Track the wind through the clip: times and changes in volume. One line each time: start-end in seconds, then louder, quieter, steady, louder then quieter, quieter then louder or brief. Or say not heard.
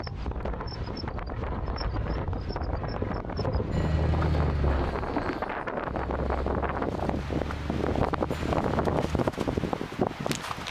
0.0-10.6 louder.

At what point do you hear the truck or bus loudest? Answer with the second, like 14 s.
4 s.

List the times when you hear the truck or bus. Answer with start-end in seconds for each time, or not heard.
3.7-9.2.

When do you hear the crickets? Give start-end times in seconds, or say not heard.
0.0-5.5.